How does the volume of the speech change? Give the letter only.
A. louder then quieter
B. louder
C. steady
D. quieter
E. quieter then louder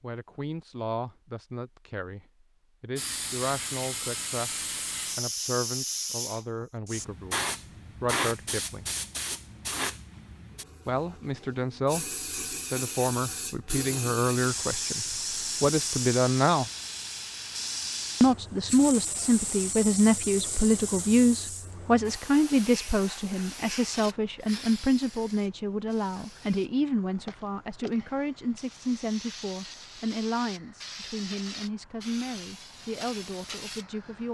A.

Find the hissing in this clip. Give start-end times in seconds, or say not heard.
3.0-34.2.